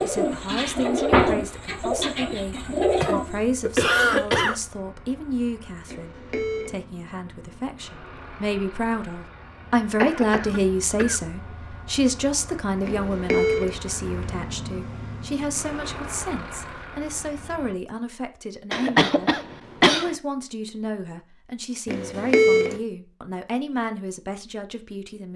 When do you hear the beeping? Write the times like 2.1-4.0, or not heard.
5.8-6.8, 12.8-13.8, 21.9-22.8.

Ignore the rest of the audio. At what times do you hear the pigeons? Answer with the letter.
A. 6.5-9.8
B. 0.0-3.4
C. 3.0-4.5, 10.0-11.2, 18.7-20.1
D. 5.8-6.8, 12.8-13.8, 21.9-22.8
B.